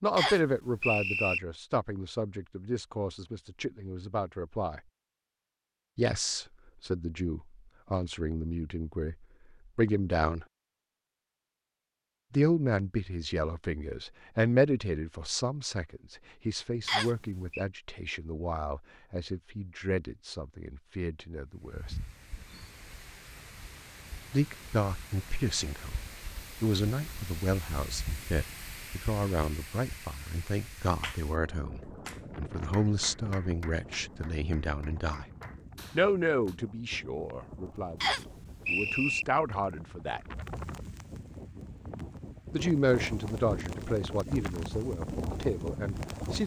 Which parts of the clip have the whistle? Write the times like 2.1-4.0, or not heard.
0.1-1.4, 16.9-17.6, 38.0-39.2.